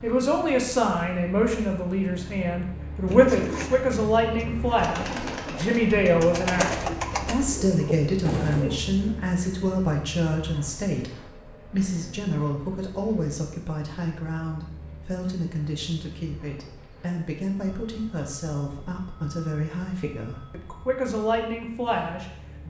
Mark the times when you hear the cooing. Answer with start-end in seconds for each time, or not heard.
3.0-8.9.